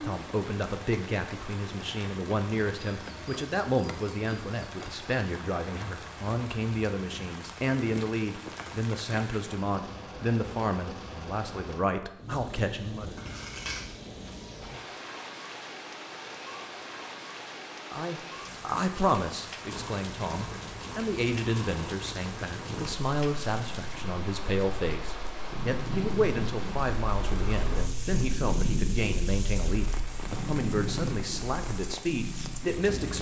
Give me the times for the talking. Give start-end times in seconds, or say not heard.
0.0-13.2, 17.9-33.1.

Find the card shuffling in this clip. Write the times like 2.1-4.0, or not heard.
13.2-13.8.